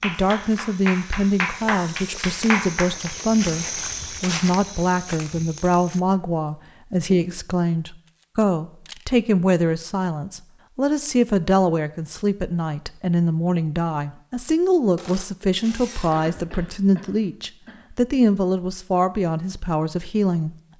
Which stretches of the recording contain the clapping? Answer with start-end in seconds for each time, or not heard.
0.0-3.1.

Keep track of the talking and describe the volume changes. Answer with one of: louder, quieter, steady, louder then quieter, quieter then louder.
steady.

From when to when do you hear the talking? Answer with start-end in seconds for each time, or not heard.
0.0-20.6.